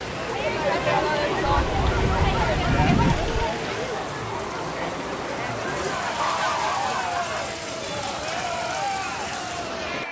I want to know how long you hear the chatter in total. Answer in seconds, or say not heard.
10 s.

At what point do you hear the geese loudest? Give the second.
3 s.